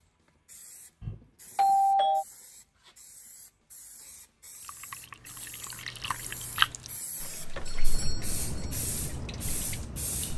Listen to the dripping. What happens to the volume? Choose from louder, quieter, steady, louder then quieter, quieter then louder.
louder then quieter.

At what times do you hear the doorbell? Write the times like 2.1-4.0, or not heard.
1.0-2.2, 7.7-8.8.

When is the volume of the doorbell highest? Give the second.
2 s.